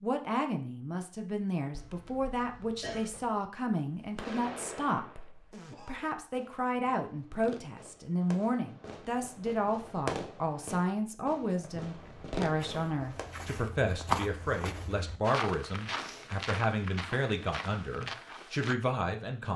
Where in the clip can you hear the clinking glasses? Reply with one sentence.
The clinking glasses can't be heard in this clip.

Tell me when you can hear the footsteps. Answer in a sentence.
You can hear the footsteps from 12.0 to 18.8 s.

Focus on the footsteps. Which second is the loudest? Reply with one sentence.
The loudest moment of the footsteps is at 14 seconds.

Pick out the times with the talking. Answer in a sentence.
You can hear the talking from 0.0 to 19.5 s.